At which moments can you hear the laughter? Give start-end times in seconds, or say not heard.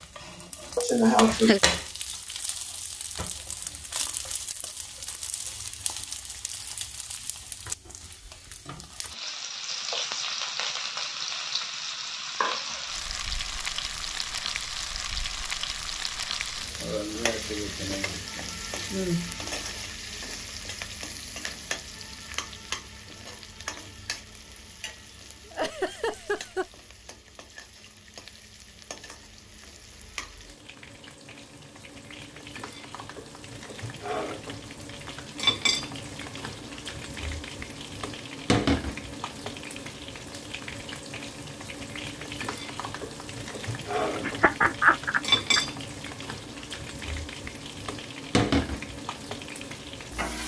0.8-1.6, 25.4-26.6, 44.2-45.6.